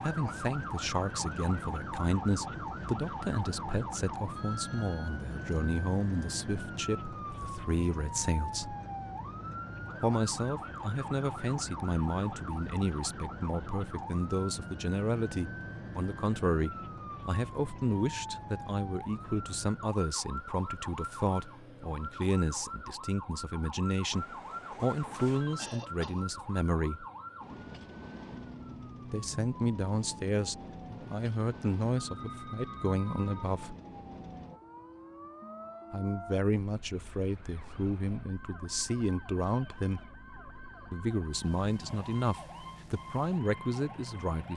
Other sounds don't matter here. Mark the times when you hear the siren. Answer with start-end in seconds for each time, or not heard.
0.0-44.5.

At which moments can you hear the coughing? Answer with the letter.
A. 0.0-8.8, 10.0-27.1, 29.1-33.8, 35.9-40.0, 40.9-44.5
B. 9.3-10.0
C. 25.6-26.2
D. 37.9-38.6
C.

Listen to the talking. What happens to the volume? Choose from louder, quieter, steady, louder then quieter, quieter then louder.
steady.